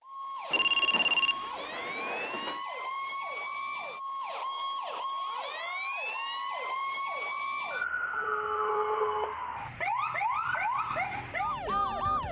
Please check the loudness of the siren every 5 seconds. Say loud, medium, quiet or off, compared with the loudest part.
medium, loud, loud.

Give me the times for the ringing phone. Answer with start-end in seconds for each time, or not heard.
0.5-2.6, 8.1-9.9.